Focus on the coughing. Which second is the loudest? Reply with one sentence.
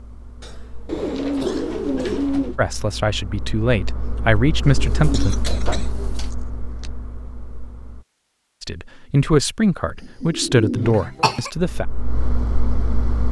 The loudest moment of the coughing is at 11 seconds.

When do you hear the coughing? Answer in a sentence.
The coughing can be heard from 0.4 to 2.3 s, from 4.9 to 6.9 s and from 10.8 to 11.5 s.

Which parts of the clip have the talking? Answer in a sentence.
The talking can be heard from 2.5 to 5.3 s and from 8.6 to 11.8 s.